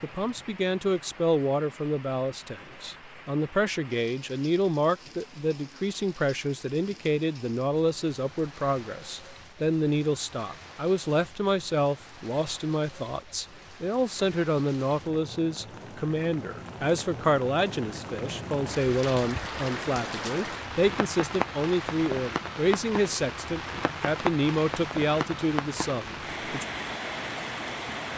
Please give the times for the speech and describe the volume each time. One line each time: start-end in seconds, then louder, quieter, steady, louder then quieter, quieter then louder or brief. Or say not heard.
0.0-26.6 steady.